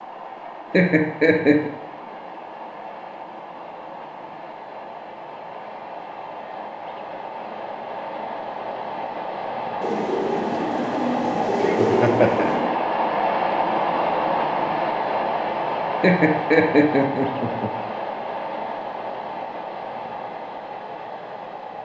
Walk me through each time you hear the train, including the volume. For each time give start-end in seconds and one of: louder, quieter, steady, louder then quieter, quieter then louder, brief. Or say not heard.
0.0-21.8 louder then quieter.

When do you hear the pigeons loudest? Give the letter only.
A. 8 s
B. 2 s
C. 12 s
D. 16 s
C.